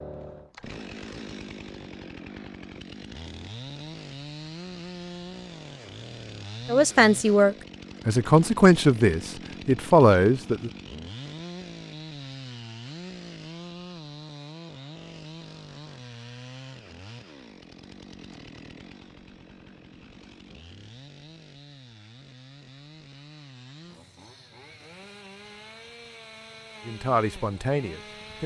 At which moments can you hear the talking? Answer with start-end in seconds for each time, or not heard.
6.7-10.7, 26.8-28.4.